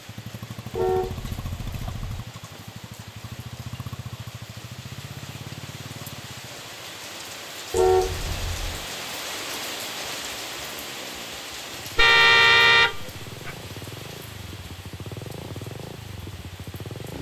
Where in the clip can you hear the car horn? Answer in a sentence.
The car horn can be heard from 0.8 to 2.1 s, from 7.7 to 8.8 s and from 11.9 to 13.5 s.